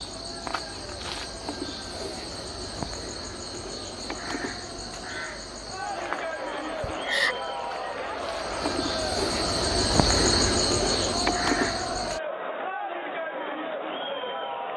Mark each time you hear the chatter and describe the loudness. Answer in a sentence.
You can hear the chatter from 0.0 to 14.7 s, getting louder.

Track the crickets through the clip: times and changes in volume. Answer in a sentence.
The crickets can be heard from 0.0 to 12.2 s, getting louder.